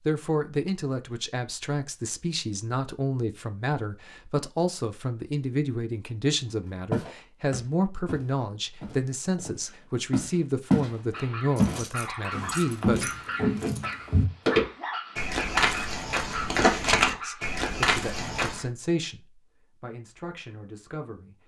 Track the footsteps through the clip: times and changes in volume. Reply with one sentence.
You can hear the footsteps from 6.9 to 18.6 s, getting louder.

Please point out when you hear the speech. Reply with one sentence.
You can hear the speech from 0.0 to 13.2 s and from 17.1 to 21.4 s.